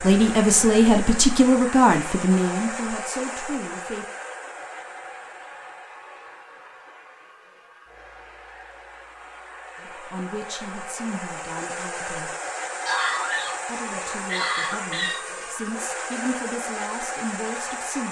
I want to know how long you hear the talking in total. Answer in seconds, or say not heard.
11 s.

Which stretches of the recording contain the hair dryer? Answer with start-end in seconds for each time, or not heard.
0.0-18.0.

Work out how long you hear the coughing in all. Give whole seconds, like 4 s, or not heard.
2 s.